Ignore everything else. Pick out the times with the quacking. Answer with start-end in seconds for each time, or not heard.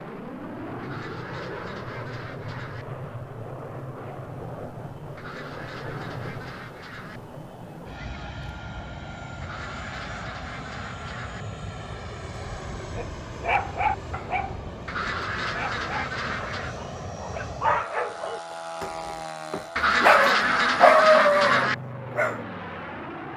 0.8-2.9, 5.2-7.2, 9.4-11.4, 14.8-16.8, 19.8-21.8.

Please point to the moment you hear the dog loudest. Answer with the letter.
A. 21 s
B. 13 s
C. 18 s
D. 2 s
A.